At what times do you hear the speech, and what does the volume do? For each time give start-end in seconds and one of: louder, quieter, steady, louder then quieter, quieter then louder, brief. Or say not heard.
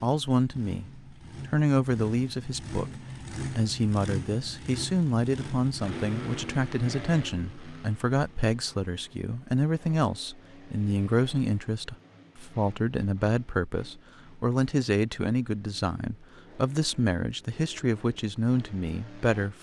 0.0-19.5 steady.